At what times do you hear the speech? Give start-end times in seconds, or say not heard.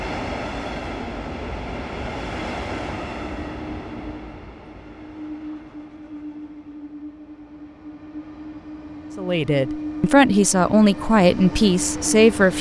9.2-12.5.